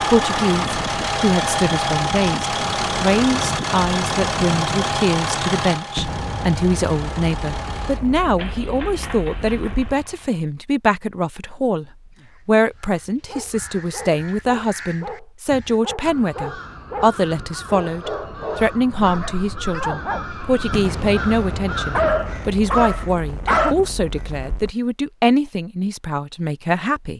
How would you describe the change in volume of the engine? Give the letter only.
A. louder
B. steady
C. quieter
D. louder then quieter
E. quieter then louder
C.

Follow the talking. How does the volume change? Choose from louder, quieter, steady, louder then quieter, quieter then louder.
steady.